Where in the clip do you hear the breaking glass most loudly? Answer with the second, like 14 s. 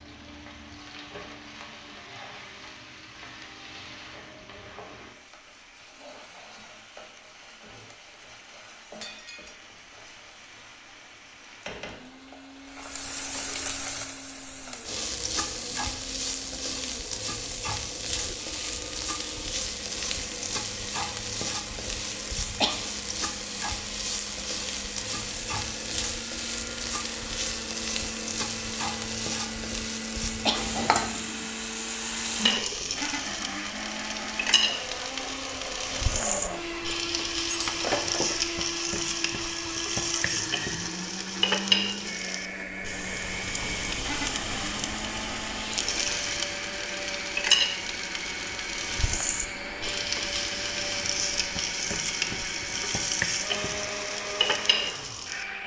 38 s.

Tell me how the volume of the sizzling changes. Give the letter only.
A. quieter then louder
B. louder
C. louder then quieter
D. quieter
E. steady
B.